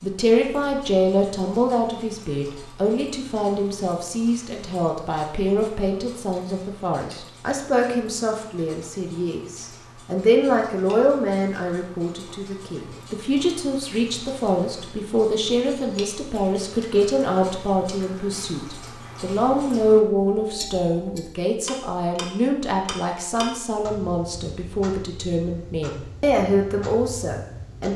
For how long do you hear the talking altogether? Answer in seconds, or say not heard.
28 s.